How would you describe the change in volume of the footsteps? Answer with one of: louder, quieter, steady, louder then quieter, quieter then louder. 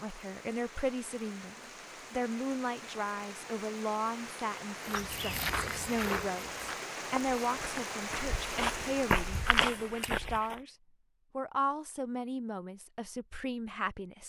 quieter then louder.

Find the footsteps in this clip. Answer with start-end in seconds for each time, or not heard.
4.8-10.6.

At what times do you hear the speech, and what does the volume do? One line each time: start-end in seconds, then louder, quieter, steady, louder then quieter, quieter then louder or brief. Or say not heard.
0.0-10.8 steady
11.3-14.2 brief.